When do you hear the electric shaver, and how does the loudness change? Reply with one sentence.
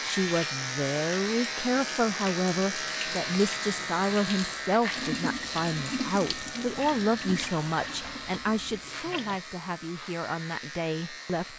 You can hear the electric shaver from 0.0 to 11.5 s, getting quieter.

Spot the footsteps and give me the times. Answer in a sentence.
You can't hear the footsteps here.